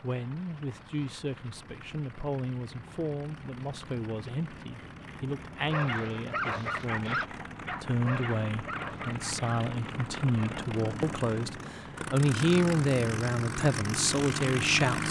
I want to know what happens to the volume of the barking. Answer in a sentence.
The volume of the barking goes down.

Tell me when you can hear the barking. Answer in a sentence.
You can hear the barking from 5.5 to 10.6 s.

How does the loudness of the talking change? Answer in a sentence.
The loudness of the talking goes up.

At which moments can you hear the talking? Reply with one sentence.
You can hear the talking from 0.0 to 15.0 s.